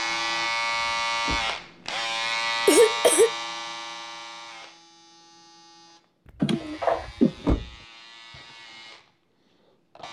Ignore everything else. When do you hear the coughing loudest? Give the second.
3 s.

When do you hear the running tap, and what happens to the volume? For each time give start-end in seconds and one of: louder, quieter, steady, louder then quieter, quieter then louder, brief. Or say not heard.
not heard.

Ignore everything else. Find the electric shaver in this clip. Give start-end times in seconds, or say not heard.
0.0-10.0.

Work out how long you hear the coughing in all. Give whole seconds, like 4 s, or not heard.
2 s.